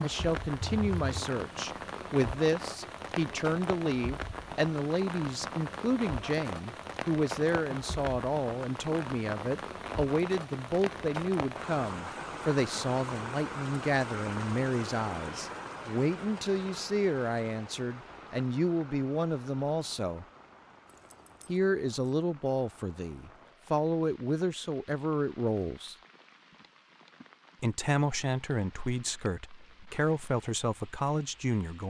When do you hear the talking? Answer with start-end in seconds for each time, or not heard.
0.0-20.2, 21.4-25.9, 27.6-31.8.